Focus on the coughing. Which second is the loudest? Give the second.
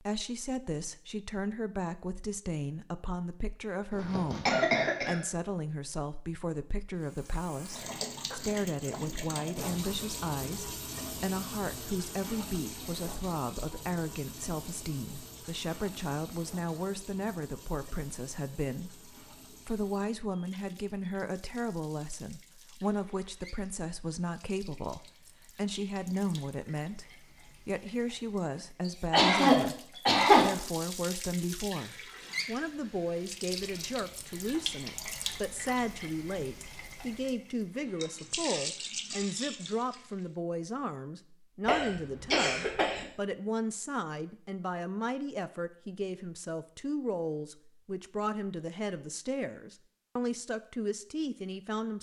30 s.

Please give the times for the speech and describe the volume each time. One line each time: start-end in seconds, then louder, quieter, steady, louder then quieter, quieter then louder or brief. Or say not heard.
0.0-51.9 steady.